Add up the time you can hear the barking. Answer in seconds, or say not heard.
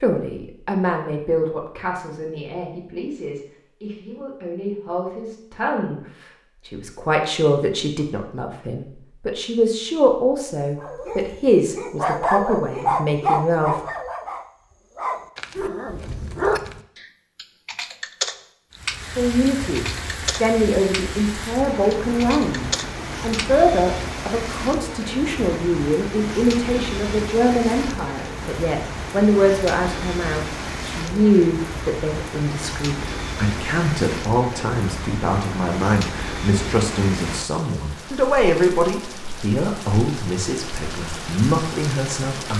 6 s.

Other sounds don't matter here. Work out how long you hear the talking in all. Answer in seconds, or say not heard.
37 s.